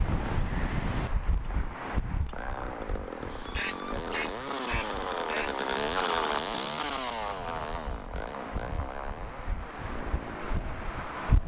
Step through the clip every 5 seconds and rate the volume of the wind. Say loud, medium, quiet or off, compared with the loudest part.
loud, medium, loud.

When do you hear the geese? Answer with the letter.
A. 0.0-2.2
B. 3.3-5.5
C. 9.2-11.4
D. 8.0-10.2
B.